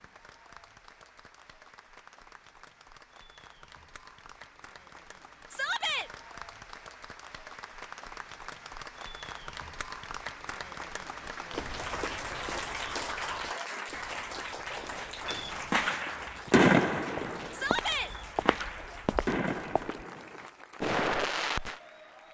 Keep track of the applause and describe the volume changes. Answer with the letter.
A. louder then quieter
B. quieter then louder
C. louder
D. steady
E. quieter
A.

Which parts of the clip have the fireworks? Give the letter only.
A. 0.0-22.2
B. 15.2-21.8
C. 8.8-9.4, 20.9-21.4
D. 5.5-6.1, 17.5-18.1
B.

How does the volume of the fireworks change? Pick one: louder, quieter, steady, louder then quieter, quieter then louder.
quieter then louder.